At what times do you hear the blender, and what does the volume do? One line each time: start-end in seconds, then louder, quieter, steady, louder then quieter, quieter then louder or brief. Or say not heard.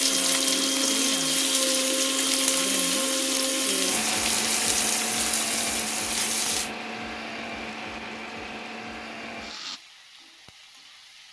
0.0-9.8 quieter.